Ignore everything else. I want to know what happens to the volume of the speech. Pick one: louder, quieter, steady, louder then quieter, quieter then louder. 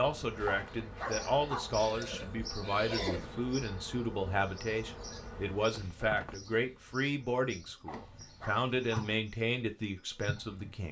steady.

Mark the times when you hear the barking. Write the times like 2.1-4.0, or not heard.
0.5-1.8, 7.8-9.2.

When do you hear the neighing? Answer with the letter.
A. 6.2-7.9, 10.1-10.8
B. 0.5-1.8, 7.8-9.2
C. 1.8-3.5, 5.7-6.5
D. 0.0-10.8
C.